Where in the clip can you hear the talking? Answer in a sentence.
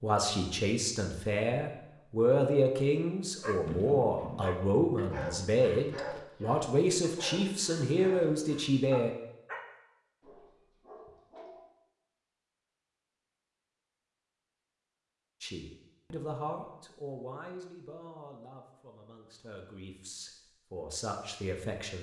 You can hear the talking from 0.0 to 9.1 s and from 15.4 to 21.9 s.